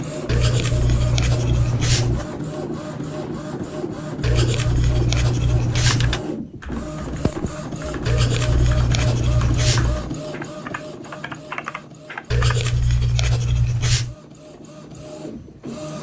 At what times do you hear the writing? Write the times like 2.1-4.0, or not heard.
0.2-2.3, 4.2-6.2, 8.1-10.1, 12.3-14.2.